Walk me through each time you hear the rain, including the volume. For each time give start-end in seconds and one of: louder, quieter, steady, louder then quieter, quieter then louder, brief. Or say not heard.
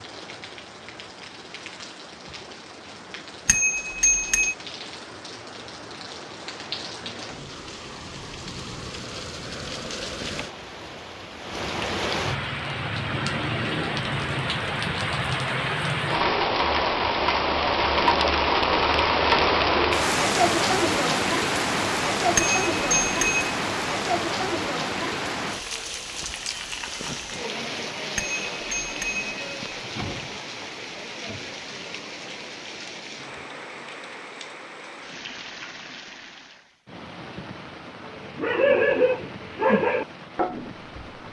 0.0-41.2 louder then quieter.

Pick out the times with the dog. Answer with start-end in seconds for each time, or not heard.
38.1-41.0.